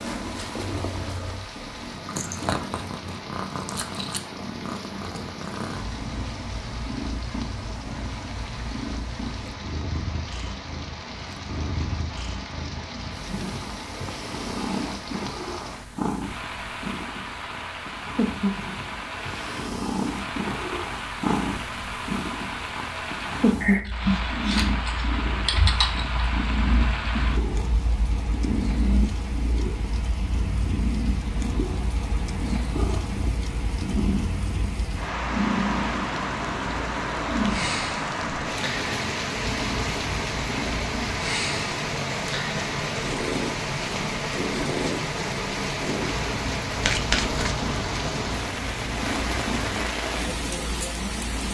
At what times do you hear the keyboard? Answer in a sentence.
You can hear the keyboard from 23.9 to 26.2 s.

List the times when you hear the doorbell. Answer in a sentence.
The doorbell can't be heard in this clip.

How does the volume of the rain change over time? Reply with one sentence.
The volume of the rain goes up.